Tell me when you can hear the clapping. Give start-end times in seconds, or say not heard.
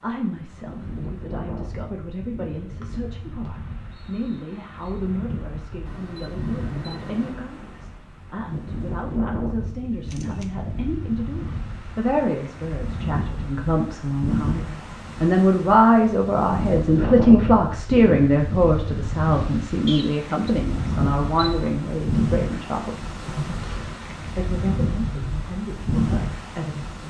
not heard.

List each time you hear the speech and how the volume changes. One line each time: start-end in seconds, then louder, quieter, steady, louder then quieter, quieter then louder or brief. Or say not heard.
0.0-27.0 louder then quieter.